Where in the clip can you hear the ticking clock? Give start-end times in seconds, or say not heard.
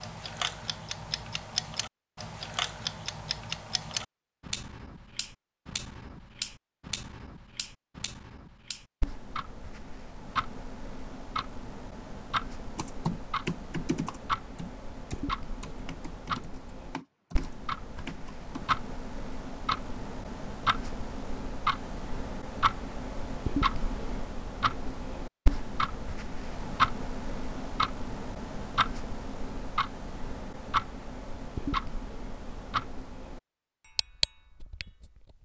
0.0-35.3.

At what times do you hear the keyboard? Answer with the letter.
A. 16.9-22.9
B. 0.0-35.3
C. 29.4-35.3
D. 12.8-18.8
D.